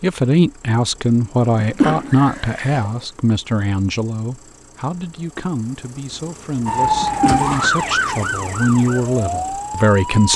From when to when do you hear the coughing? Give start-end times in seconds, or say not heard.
1.6-2.9, 6.8-8.1.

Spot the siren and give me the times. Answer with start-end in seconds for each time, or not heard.
6.7-10.3.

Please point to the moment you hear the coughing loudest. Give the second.
2 s.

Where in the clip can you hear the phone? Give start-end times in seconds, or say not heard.
not heard.